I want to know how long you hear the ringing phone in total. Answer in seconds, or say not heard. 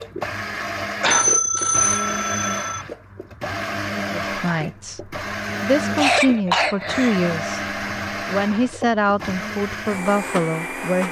2 s.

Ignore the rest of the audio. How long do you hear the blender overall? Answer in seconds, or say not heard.
11 s.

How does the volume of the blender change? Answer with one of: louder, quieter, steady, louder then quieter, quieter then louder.
steady.